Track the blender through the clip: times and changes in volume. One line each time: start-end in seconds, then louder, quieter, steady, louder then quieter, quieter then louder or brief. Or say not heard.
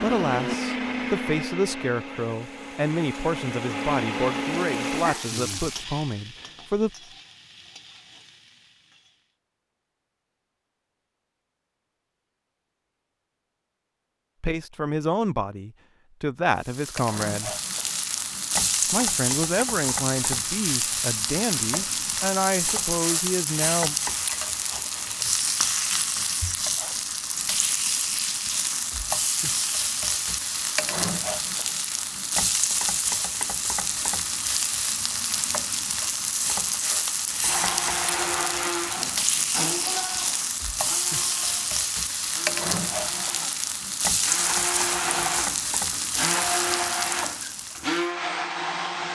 0.0-5.1 quieter then louder
37.5-49.0 quieter then louder.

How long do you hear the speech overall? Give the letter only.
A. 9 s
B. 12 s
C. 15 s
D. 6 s
C.